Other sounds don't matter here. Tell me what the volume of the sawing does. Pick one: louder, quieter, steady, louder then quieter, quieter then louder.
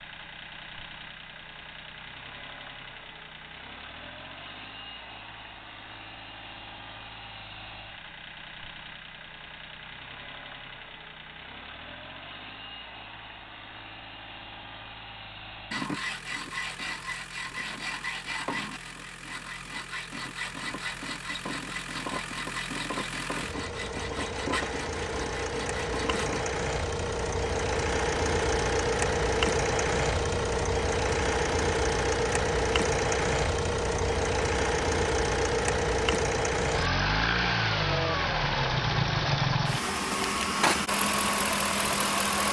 steady.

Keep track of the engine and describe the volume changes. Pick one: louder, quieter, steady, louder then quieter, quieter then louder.
louder.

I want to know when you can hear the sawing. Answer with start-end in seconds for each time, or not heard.
15.7-26.4.